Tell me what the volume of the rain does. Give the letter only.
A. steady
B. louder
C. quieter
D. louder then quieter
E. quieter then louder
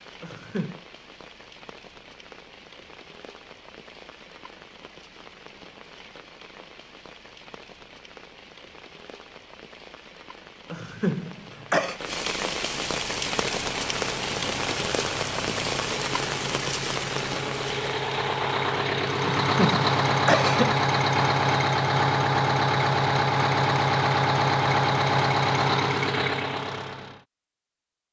B.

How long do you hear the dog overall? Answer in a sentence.
The dog can't be heard in this clip.